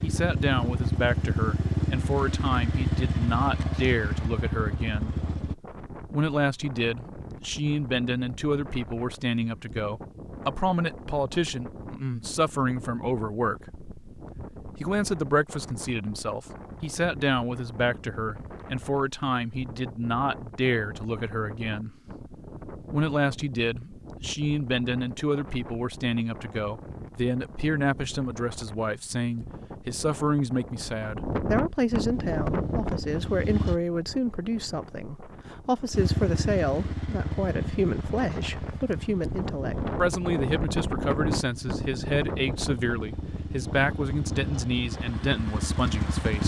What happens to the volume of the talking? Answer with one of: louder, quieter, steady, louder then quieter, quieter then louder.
steady.